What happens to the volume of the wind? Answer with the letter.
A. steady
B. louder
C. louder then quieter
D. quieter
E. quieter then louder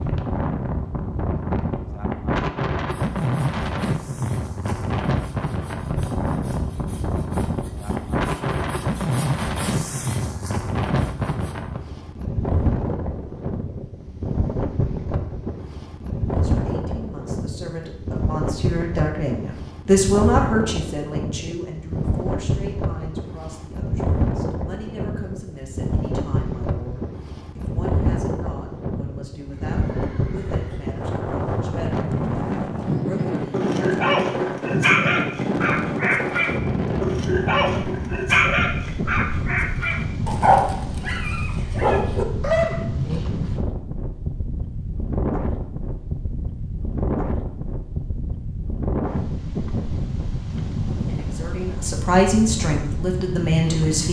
A.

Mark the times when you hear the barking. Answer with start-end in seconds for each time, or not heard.
33.4-42.9.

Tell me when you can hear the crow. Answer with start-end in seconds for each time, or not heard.
not heard.